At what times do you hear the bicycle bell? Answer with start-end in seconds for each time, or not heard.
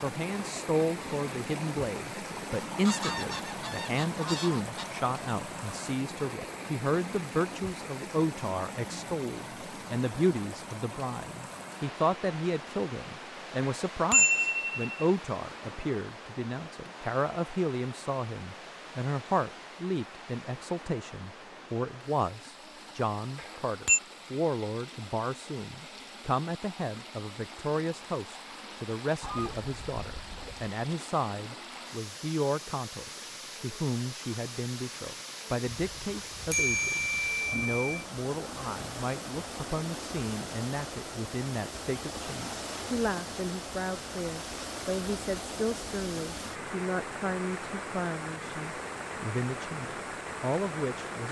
13.6-15.1, 23.4-24.0, 36.5-37.9.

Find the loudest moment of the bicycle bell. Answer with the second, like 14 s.
14 s.